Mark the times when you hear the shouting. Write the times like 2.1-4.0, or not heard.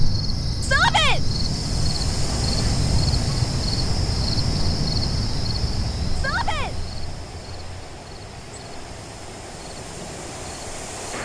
0.6-1.2, 6.2-6.8.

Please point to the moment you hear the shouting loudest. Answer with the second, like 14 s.
1 s.